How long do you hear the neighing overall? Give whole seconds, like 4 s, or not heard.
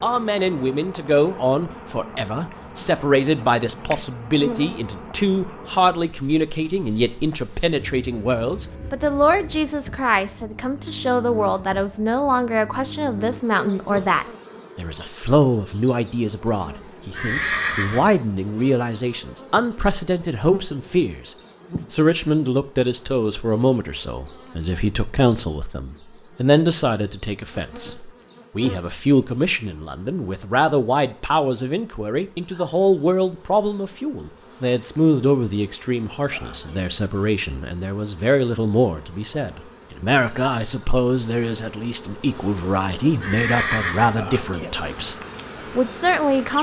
2 s.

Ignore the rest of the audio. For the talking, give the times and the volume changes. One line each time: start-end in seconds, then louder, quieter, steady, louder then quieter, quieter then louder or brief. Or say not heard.
0.0-45.1 steady
45.8-46.5 brief.